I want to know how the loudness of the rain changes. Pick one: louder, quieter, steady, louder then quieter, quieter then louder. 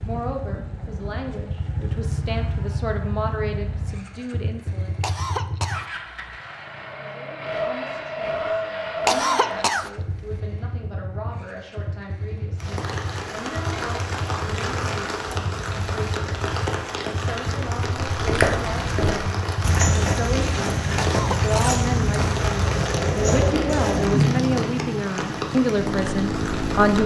steady.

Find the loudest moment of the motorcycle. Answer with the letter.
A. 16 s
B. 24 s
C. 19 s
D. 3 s
B.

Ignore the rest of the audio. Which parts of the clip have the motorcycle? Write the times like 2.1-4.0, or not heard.
0.0-27.0.